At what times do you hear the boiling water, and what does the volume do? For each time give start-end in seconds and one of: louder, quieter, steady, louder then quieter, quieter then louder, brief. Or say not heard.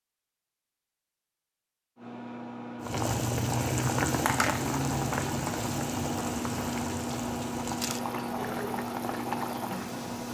2.8-10.3 quieter.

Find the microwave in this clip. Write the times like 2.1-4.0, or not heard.
1.9-10.3.